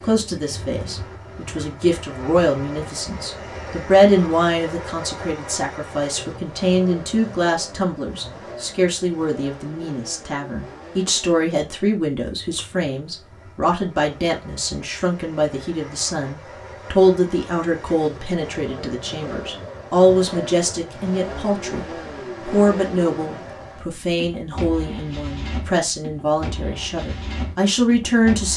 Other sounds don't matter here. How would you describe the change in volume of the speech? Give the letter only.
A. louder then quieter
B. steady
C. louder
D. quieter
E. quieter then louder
B.